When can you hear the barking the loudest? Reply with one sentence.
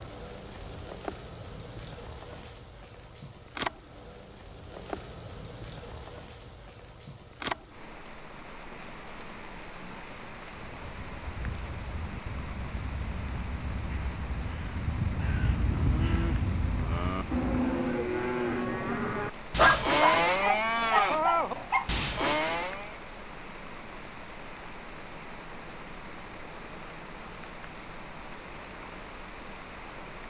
The loudest moment of the barking is at 20 seconds.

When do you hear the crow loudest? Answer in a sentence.
The loudest moment of the crow is at 16 seconds.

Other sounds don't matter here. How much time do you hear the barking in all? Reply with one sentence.
The barking can be heard for 2 seconds in total.